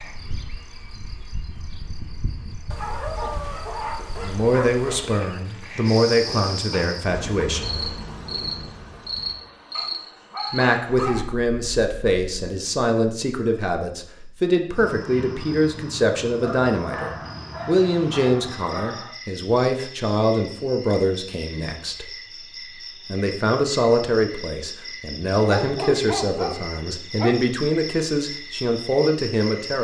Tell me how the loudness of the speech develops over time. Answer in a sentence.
The volume of the speech stays about the same.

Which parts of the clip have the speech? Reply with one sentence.
You can hear the speech from 4.2 to 7.9 s, from 10.5 to 22.1 s and from 23.1 to 29.7 s.